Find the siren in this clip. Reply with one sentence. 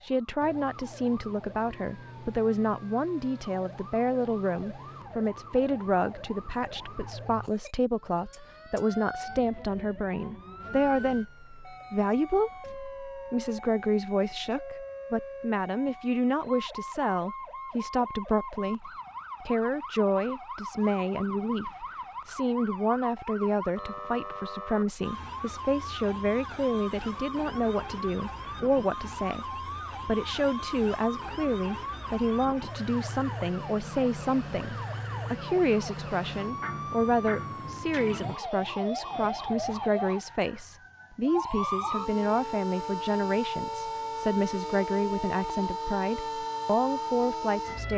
The siren can be heard from 0.0 to 47.9 s.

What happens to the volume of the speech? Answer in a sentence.
The loudness of the speech stays about the same.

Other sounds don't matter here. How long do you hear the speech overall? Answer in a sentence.
You can hear the speech for 48 seconds altogether.